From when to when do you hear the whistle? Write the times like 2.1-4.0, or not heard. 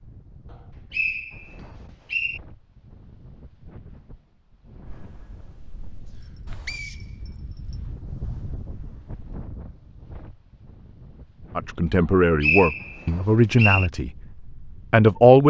0.5-2.4, 6.7-7.8, 12.4-13.9.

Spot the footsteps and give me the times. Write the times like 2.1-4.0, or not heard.
not heard.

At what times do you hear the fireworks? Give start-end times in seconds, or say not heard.
4.8-6.8.